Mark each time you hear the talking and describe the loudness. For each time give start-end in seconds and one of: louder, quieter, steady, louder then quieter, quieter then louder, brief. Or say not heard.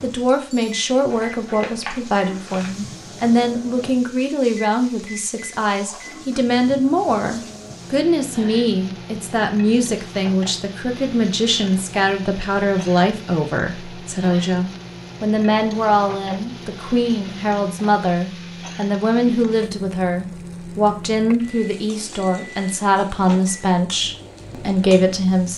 0.0-25.5 steady.